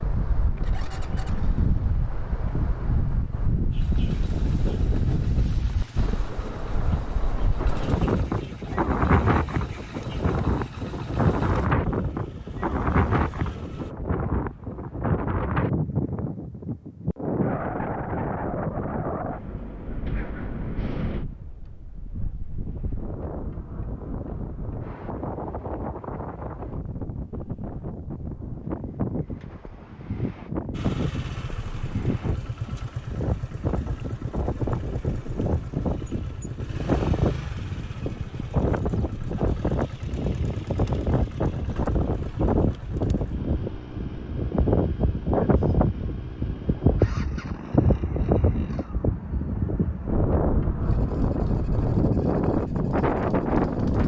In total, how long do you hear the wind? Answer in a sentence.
The wind can be heard for 54 seconds in total.